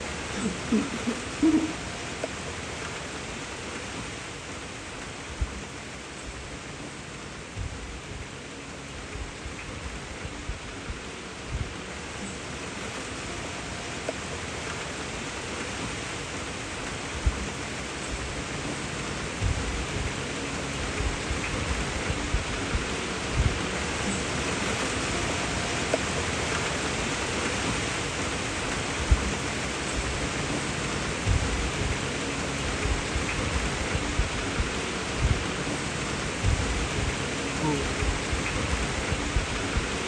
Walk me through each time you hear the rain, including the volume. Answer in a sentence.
The rain can be heard from 0.0 to 40.0 s, getting louder.